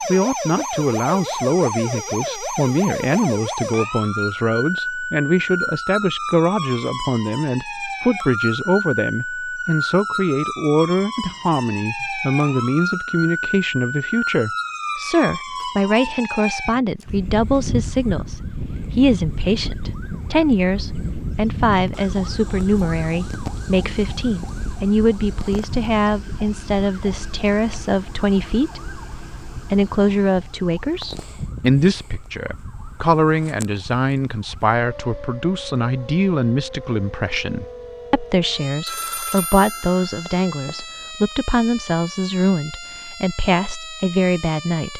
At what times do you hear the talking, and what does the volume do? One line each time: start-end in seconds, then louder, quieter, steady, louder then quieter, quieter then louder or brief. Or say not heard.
0.1-28.9 steady
29.6-44.9 steady.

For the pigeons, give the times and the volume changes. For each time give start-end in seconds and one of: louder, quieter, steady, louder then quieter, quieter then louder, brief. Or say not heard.
not heard.